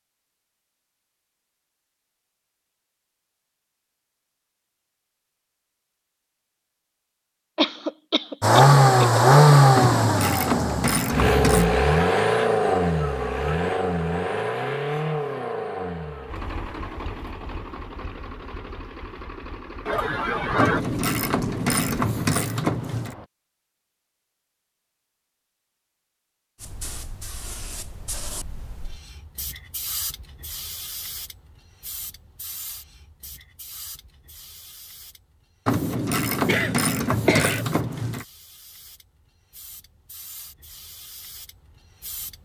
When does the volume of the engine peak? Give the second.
9 s.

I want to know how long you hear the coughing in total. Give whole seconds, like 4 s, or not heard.
4 s.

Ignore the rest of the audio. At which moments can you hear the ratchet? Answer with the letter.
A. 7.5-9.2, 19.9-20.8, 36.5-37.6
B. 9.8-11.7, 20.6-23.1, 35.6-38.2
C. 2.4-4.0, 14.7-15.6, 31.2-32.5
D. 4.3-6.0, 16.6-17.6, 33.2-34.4
B.